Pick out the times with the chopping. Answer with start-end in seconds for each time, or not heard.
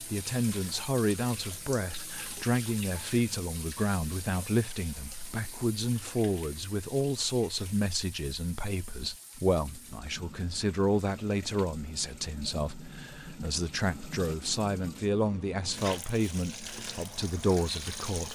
not heard.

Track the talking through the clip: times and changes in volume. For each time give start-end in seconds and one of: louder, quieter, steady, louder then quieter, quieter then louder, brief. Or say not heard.
0.0-18.3 steady.